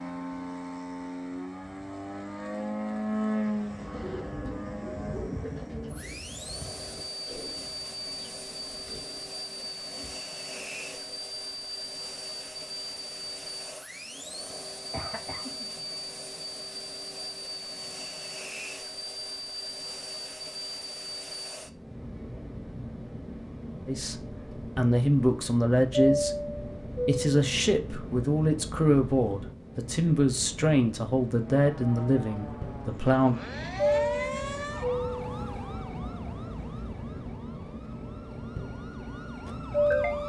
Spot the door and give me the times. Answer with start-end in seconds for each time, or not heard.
not heard.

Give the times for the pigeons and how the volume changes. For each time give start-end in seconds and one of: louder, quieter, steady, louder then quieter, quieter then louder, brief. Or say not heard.
3.5-11.2 quieter.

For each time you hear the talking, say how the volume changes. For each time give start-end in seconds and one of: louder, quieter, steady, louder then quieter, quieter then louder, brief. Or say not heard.
23.9-33.4 steady.